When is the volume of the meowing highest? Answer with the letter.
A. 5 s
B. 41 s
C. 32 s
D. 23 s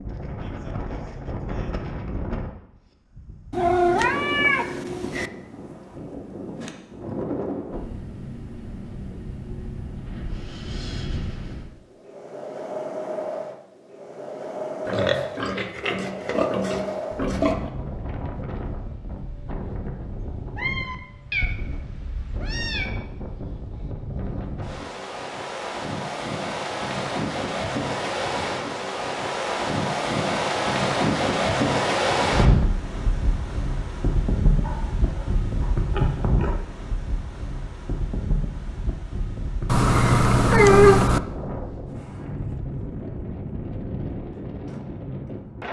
B.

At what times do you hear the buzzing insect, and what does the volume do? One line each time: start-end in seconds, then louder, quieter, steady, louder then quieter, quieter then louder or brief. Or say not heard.
not heard.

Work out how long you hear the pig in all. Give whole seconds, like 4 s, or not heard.
5 s.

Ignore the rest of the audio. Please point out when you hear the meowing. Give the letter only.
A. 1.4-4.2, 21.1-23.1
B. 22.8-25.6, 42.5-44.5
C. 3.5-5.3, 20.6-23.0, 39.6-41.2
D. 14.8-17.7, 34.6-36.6
C.